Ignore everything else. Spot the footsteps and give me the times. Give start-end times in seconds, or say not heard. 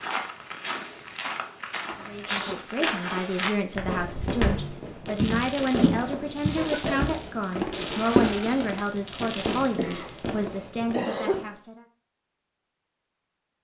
0.0-8.5.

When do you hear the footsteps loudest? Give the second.
8 s.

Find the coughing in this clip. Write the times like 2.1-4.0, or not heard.
1.9-3.0, 6.5-7.2, 9.6-11.4.